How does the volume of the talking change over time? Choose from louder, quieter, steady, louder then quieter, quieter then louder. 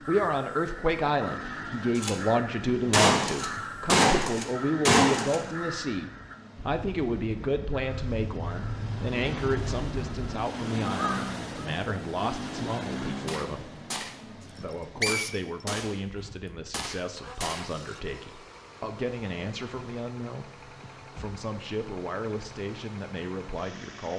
quieter.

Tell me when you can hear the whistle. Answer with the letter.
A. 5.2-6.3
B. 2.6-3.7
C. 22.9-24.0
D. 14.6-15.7
D.